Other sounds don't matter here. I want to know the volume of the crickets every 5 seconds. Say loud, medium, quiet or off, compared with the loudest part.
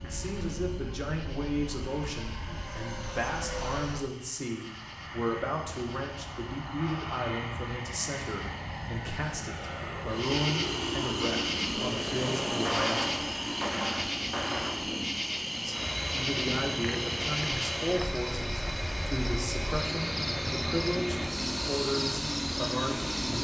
quiet, quiet, loud, loud, loud.